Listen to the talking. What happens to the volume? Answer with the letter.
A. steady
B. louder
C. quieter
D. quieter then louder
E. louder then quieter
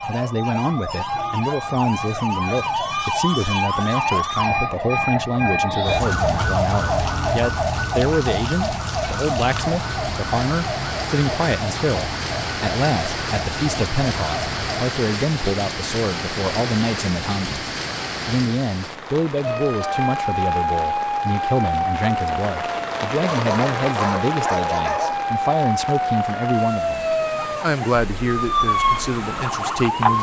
A.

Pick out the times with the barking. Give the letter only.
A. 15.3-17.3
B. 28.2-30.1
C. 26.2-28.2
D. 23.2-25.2
D.